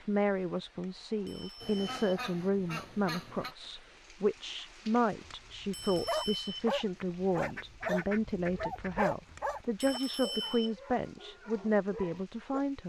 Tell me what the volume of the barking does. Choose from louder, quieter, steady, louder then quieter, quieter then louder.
quieter.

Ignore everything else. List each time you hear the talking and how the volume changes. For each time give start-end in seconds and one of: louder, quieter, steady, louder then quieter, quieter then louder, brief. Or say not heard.
0.0-12.8 steady.